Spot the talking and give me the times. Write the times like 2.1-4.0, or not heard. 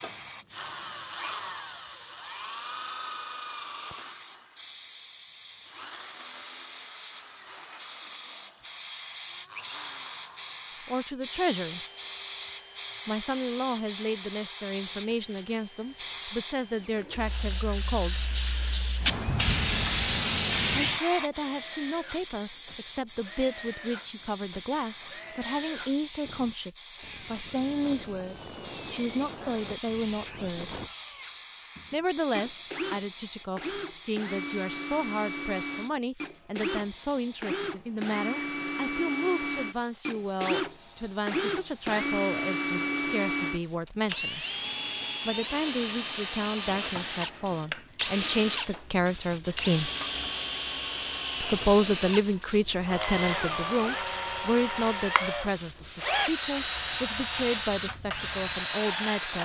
10.8-11.8, 13.1-18.3, 20.7-30.8, 31.9-44.5, 45.2-49.9, 51.4-59.3.